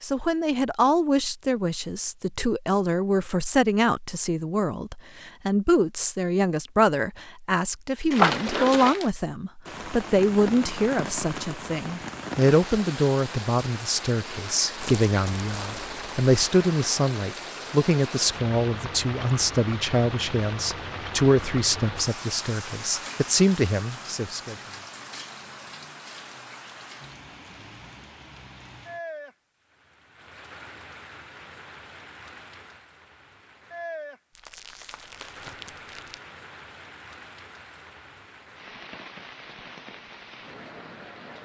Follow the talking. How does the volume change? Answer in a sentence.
The loudness of the talking stays about the same.